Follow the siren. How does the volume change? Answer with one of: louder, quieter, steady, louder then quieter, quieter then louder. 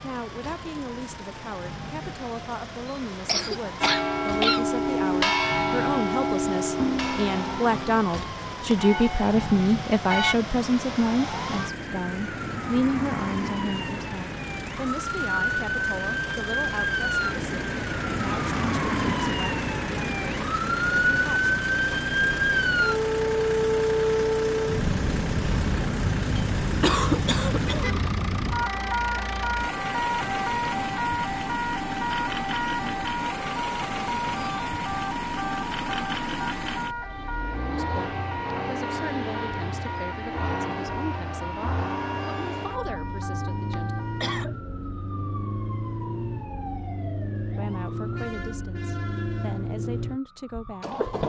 louder then quieter.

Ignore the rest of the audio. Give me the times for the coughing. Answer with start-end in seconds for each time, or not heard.
3.2-4.6, 26.8-27.9, 43.6-44.5.